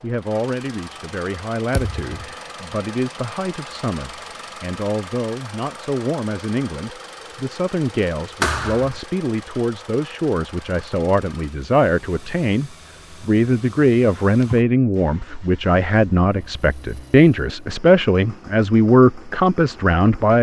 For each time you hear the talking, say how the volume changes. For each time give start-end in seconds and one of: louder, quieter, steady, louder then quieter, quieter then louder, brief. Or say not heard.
0.0-20.3 louder.